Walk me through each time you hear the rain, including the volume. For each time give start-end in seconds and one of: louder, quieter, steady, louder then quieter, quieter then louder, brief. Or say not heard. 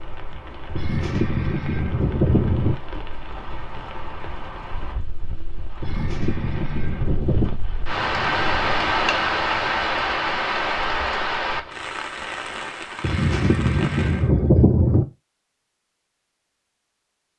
0.0-14.3 louder then quieter.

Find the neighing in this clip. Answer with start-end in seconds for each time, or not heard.
0.8-2.8, 5.8-7.6, 13.0-15.1.